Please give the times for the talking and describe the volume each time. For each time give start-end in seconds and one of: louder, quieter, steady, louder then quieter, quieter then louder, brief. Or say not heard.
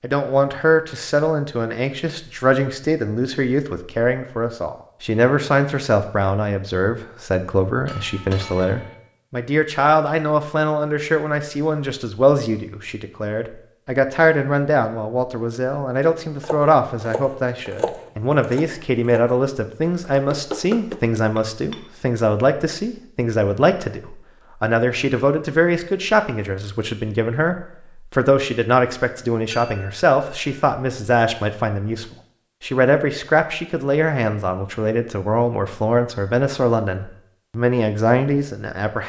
0.0-39.0 steady.